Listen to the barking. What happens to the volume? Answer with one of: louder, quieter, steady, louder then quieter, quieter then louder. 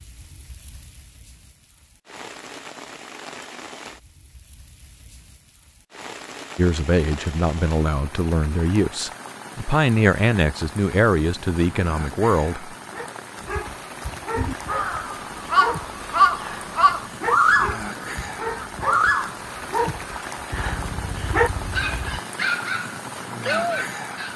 louder.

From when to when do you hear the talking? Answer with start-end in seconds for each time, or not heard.
6.5-12.8.